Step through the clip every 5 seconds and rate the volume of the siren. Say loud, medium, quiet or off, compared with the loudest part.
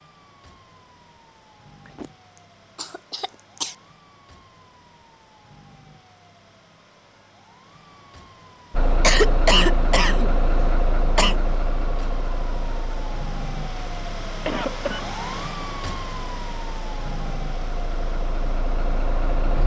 quiet, quiet, loud, loud.